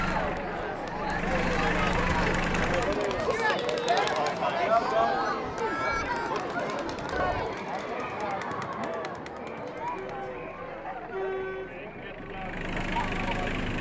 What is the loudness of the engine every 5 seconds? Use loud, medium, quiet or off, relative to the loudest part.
loud, off, medium.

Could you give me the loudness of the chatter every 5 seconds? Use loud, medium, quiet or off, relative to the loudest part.
loud, loud, medium.